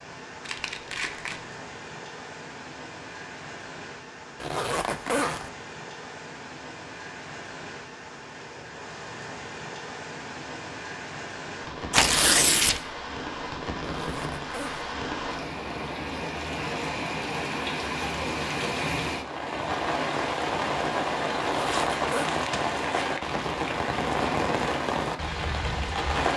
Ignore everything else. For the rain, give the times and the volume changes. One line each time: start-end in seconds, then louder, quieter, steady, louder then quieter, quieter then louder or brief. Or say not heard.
0.0-26.3 louder.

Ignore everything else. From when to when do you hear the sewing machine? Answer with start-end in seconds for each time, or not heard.
not heard.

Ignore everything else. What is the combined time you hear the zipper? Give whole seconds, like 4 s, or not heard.
3 s.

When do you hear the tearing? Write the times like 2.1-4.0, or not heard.
0.5-1.4, 11.9-12.8, 21.6-23.2.